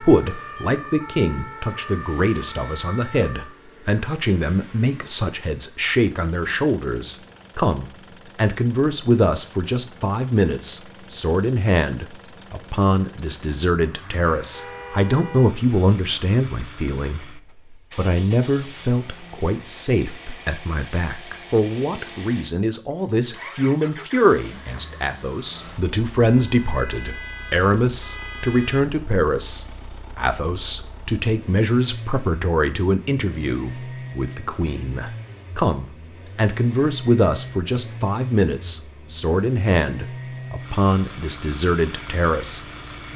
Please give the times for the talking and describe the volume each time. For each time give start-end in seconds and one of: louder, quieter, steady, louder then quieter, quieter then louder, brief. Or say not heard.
0.0-42.6 steady.